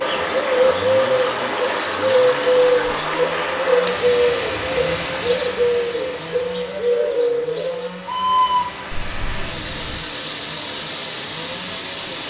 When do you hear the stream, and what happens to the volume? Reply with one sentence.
The stream can be heard from 0.0 to 12.2 s, getting quieter then louder.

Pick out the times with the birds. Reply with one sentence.
The birds can be heard from 0.0 to 10.0 s.